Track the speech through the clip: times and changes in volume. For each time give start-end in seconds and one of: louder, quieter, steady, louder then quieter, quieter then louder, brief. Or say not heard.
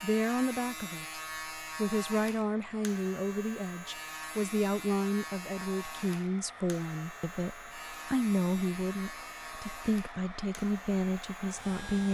0.0-12.1 steady.